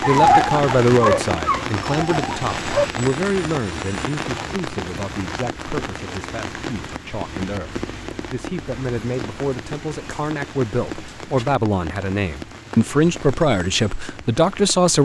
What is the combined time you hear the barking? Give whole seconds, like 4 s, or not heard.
3 s.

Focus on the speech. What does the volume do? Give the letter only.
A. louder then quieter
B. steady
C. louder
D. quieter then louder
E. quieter
D.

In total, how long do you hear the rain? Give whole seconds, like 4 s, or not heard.
15 s.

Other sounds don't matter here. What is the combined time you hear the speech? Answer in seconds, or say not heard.
15 s.